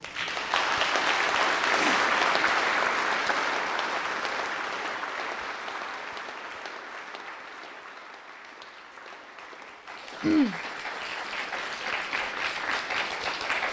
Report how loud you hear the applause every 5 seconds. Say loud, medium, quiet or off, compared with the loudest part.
loud, quiet, medium.